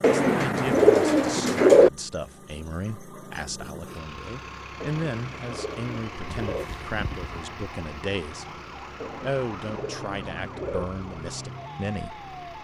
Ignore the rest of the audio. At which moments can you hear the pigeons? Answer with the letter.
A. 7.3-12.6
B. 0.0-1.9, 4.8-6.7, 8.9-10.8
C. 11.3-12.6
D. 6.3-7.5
B.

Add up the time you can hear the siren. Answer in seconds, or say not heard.
5 s.